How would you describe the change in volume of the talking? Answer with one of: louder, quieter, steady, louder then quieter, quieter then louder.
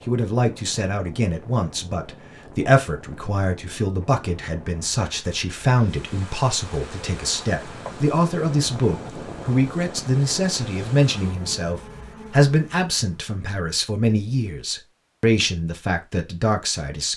steady.